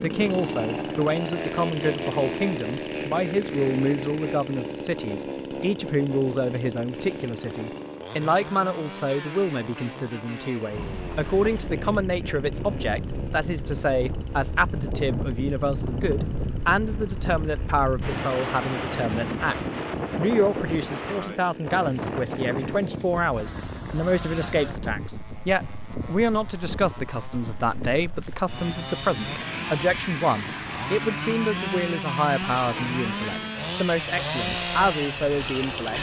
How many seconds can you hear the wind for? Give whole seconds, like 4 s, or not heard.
25 s.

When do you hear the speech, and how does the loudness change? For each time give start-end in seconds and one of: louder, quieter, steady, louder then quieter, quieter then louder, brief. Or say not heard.
0.0-19.6 steady
20.1-35.9 steady.